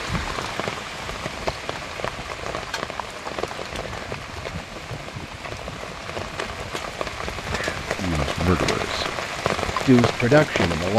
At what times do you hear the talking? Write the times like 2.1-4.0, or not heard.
8.0-9.1, 9.8-10.9.